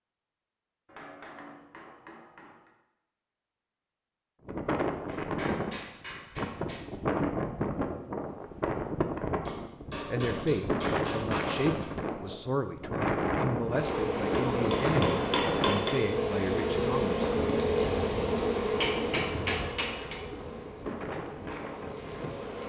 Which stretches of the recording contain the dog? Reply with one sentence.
The dog can't be heard in this clip.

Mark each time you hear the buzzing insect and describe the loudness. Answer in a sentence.
You can hear the buzzing insect from 13.7 to 22.6 s, getting quieter.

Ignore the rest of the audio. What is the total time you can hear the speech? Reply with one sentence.
The speech can be heard for 7 seconds in total.